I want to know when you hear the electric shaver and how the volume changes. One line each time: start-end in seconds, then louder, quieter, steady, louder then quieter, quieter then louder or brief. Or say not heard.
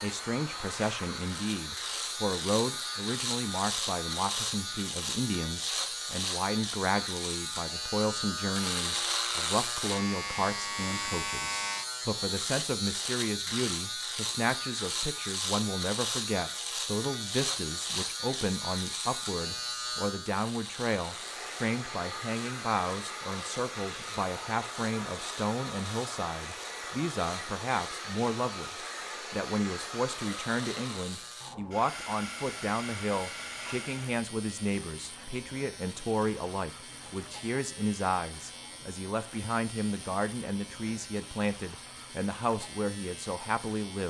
0.0-44.0 quieter.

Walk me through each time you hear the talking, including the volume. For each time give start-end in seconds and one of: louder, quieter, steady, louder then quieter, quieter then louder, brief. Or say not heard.
0.0-44.0 steady.